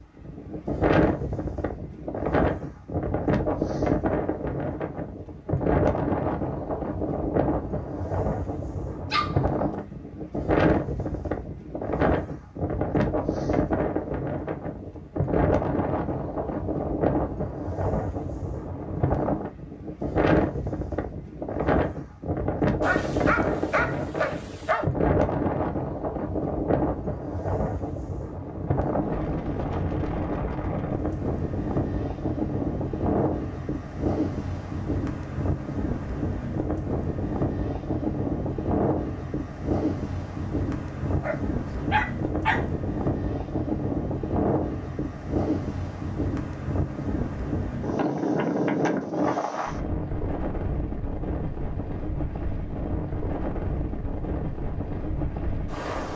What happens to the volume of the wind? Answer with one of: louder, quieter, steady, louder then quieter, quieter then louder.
steady.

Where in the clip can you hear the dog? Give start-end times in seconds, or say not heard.
9.1-10.0, 22.8-24.9, 41.0-42.6.